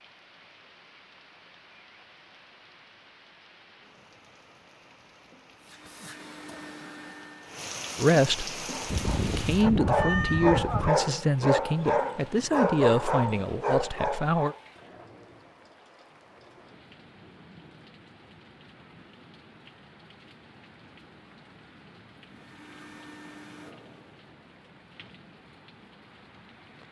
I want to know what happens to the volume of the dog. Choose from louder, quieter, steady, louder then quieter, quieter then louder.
steady.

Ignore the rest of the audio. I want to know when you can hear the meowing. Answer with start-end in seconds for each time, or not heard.
8.9-10.9.